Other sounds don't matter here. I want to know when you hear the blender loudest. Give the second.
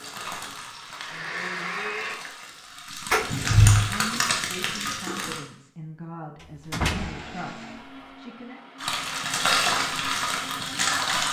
2 s.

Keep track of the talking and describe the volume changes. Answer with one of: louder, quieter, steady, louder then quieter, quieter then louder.
steady.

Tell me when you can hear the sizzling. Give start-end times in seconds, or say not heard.
0.0-5.4, 8.8-11.2.